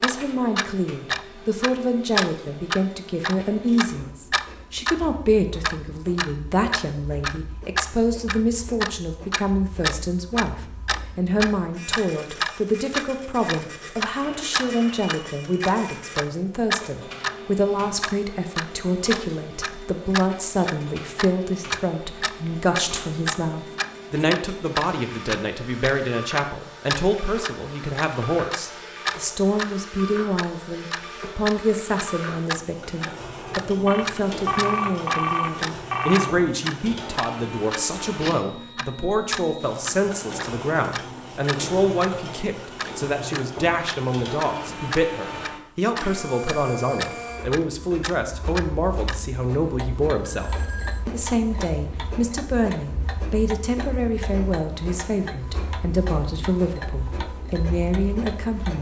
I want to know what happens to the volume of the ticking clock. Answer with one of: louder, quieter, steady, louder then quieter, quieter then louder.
quieter.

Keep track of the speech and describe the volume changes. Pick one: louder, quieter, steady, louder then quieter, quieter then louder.
steady.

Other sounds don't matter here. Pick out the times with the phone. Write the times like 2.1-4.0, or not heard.
14.2-15.5, 33.9-36.3, 50.2-51.0.